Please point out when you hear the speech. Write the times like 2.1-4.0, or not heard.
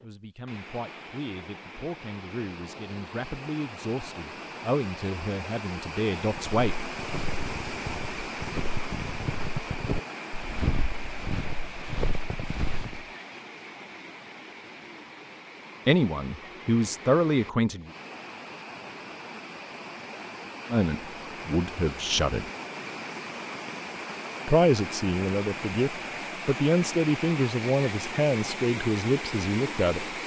0.0-6.8, 15.8-17.9, 20.7-22.5, 24.4-30.1.